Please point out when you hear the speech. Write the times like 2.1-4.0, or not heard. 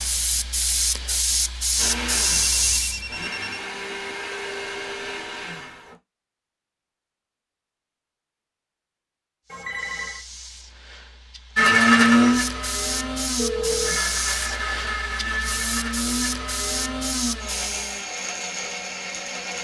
not heard.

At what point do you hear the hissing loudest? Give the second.
2 s.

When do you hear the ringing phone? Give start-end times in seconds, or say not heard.
2.2-3.6, 9.5-10.2, 13.3-14.1.